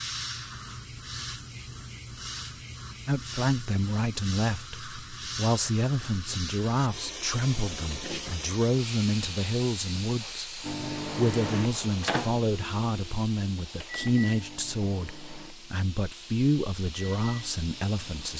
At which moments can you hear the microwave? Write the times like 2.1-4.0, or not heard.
10.6-18.3.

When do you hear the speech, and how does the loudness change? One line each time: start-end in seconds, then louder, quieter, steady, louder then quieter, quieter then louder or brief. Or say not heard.
3.0-18.3 steady.